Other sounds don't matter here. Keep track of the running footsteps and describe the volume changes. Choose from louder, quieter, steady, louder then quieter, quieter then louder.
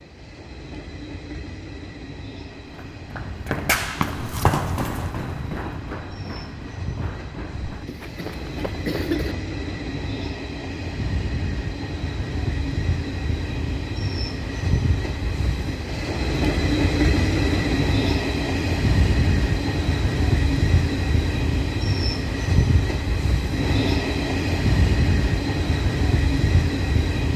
quieter.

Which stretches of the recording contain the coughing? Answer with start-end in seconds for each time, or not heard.
7.8-9.3.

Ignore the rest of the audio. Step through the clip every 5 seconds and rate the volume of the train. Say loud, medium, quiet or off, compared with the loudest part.
quiet, medium, medium, loud, loud, loud.